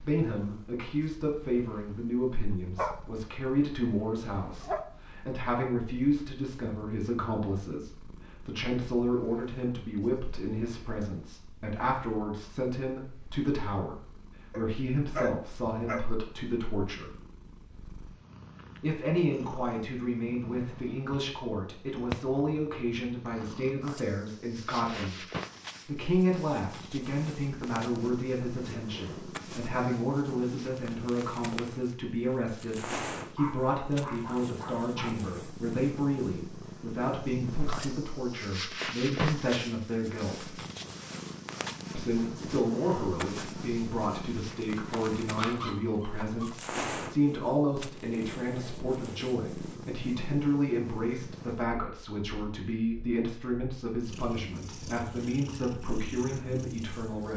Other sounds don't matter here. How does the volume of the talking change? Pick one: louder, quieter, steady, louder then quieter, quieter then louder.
steady.